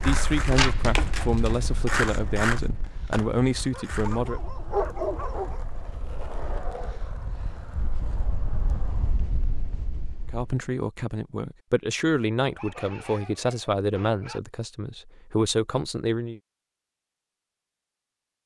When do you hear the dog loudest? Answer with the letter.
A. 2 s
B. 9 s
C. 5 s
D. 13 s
C.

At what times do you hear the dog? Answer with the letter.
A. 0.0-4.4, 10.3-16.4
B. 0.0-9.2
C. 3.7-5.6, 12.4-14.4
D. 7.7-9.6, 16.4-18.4
C.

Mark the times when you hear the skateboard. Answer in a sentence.
You can hear the skateboard from 0.0 to 9.2 s.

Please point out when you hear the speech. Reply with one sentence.
You can hear the speech from 0.0 to 4.4 s and from 10.3 to 16.4 s.